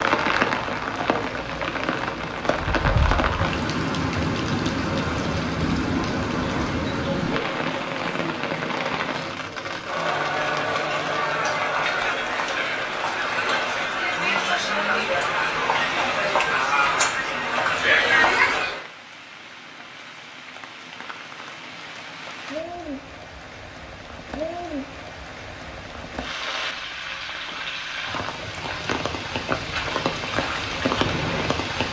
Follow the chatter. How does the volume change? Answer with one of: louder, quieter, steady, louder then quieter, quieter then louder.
louder.